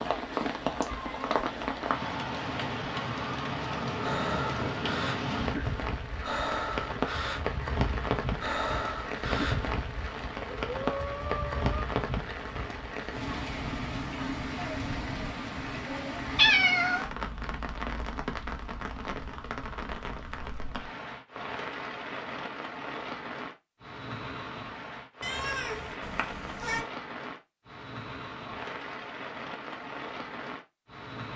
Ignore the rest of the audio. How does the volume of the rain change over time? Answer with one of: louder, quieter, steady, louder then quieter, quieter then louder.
quieter.